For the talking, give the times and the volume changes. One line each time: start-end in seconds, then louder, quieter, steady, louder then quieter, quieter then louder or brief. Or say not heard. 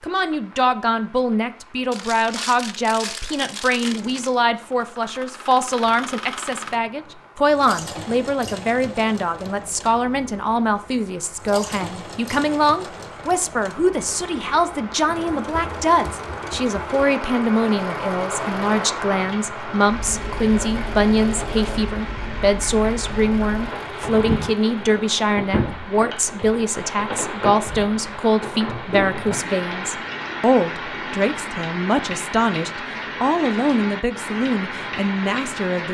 0.0-35.8 steady.